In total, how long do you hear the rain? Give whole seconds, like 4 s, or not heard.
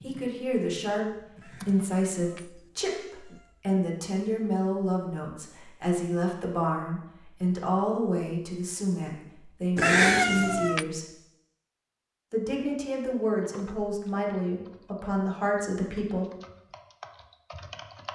not heard.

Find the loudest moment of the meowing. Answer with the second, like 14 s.
10 s.